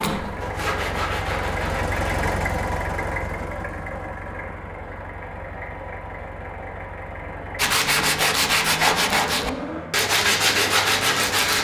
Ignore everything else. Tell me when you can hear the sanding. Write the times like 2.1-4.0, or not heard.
0.0-2.2, 7.5-11.5.